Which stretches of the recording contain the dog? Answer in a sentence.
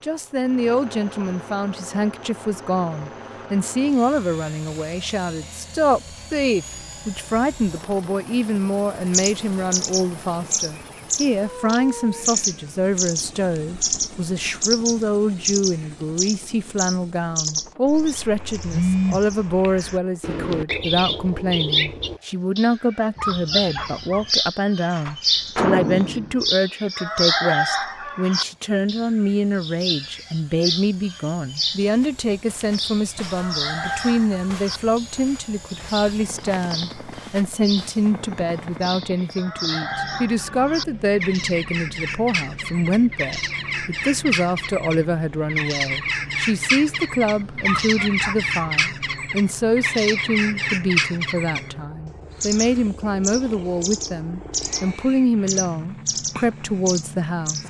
You can hear the dog from 23.1 to 24.3 s and from 47.6 to 48.8 s.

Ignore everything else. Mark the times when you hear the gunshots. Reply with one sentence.
You can hear the gunshots from 24.9 to 26.5 s.